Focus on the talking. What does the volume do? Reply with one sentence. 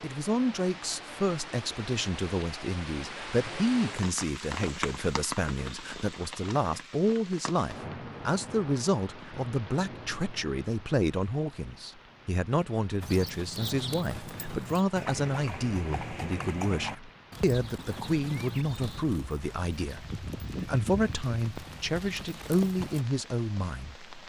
The volume of the talking stays about the same.